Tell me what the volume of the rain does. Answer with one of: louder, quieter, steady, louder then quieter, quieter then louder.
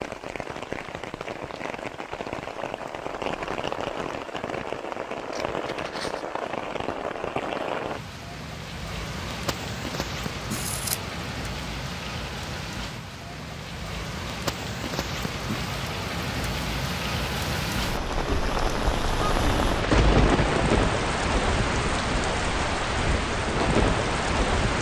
louder.